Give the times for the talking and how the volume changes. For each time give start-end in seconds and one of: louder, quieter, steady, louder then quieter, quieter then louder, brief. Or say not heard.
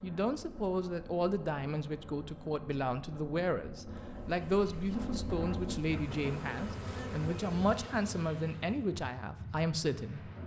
0.0-10.3 steady.